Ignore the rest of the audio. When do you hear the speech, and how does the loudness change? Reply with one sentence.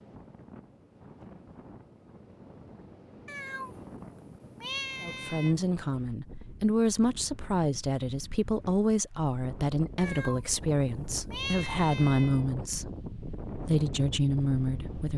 The speech can be heard from 5.0 to 15.1 s, at a steady volume.